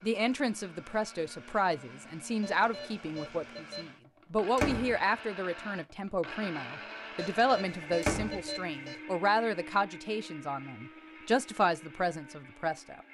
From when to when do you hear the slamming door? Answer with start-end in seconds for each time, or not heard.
4.5-5.0, 8.0-8.4.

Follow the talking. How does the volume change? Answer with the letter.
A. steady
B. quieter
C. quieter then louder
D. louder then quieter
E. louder
A.